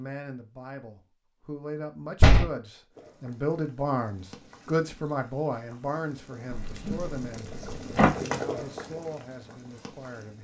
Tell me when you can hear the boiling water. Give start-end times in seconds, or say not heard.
2.9-10.4.